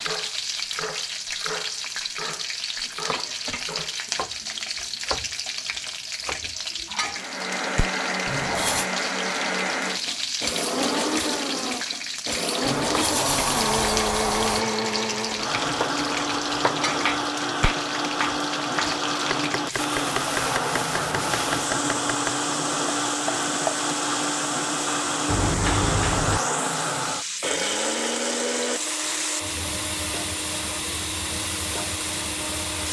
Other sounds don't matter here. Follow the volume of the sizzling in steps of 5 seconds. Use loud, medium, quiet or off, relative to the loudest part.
loud, loud, loud, loud, loud, loud, medium.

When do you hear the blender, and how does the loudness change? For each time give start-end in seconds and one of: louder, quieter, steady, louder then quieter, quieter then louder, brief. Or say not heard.
7.1-32.8 steady.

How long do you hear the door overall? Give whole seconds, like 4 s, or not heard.
4 s.